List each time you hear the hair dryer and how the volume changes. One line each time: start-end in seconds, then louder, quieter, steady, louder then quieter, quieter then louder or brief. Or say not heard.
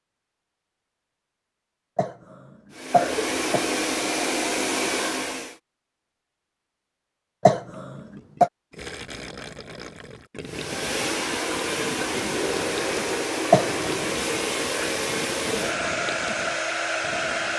2.7-5.5 brief
10.4-17.5 steady.